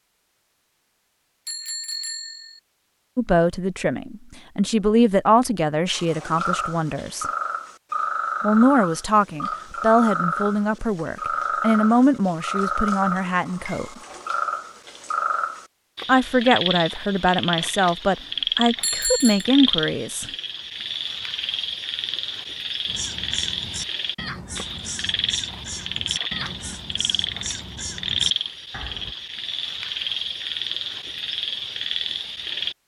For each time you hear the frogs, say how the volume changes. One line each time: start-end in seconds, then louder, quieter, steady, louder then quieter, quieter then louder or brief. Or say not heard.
5.9-32.8 steady.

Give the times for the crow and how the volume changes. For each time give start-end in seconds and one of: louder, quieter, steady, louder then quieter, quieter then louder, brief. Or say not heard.
22.9-29.1 steady.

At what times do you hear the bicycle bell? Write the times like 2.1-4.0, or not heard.
1.4-2.6, 18.8-19.4.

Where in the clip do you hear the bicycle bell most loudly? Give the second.
19 s.